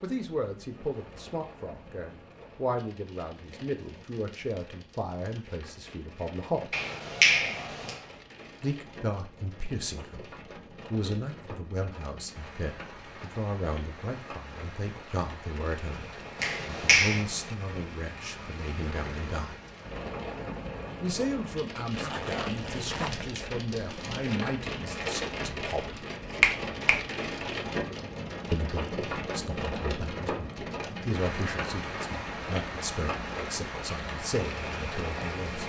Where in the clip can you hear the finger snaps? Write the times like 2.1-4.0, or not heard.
6.7-8.0, 16.4-17.2, 26.4-26.9.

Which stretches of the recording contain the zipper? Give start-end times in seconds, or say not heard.
21.9-23.4.